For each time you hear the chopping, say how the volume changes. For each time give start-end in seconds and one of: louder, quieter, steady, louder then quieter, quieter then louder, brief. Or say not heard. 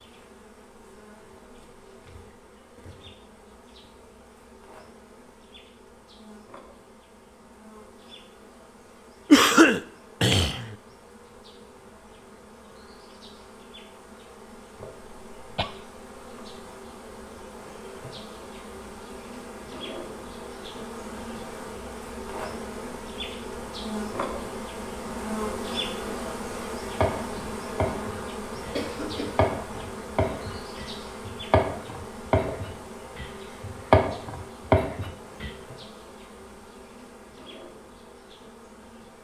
27.0-35.5 louder.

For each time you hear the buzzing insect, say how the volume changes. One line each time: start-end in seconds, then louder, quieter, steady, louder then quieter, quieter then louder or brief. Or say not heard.
0.0-39.2 louder then quieter.